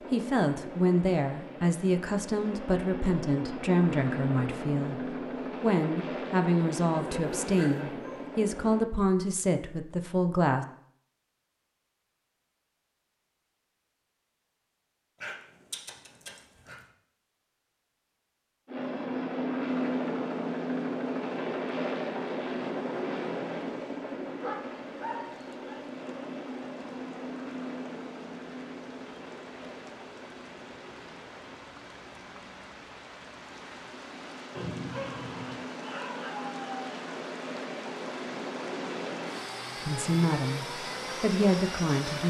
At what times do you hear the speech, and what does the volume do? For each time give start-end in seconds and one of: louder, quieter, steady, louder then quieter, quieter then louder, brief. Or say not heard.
0.0-10.7 steady
39.9-42.2 brief.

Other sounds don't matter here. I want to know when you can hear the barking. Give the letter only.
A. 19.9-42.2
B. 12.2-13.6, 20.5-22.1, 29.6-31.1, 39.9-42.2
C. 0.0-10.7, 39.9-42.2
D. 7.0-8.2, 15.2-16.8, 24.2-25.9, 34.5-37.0
D.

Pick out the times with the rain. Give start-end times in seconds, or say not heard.
19.9-42.2.